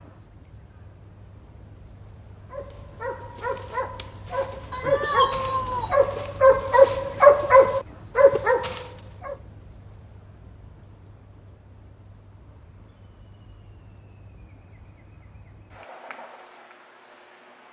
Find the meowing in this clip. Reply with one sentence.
The meowing can be heard from 4.7 to 6.0 s.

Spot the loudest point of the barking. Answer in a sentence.
The loudest moment of the barking is at 7 seconds.